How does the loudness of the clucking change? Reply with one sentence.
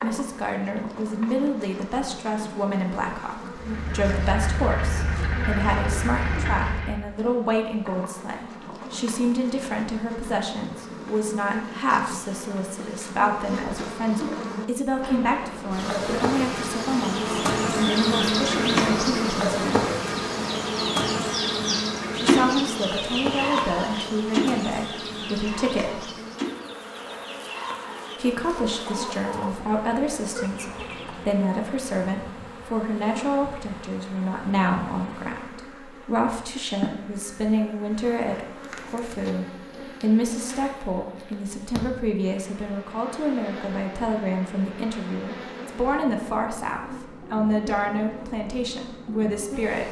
The volume of the clucking goes down.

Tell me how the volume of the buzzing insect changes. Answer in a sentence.
The volume of the buzzing insect goes up, then down.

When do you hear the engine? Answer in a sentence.
The engine can be heard from 3.5 to 7.0 s.